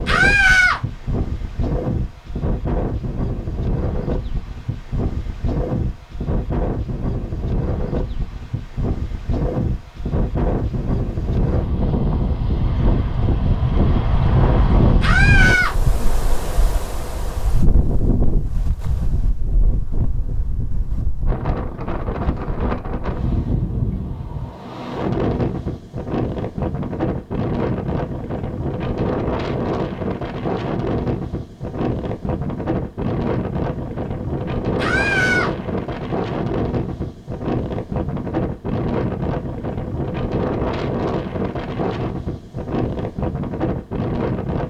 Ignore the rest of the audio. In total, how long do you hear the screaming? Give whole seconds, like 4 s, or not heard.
2 s.